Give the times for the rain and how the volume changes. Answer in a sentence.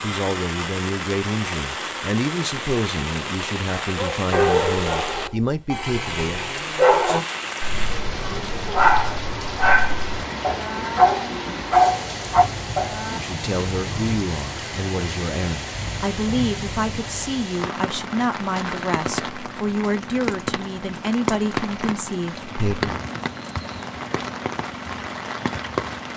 You can hear the rain from 0.0 to 26.1 s, at a steady volume.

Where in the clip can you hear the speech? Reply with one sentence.
You can hear the speech from 0.0 to 6.5 s and from 13.1 to 23.0 s.